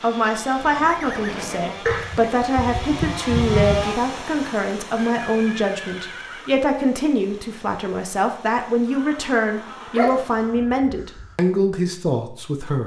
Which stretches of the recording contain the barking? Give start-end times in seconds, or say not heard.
1.9-3.9, 9.9-11.3.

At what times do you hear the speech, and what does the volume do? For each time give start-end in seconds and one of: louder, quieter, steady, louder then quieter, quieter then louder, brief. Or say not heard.
0.0-12.8 steady.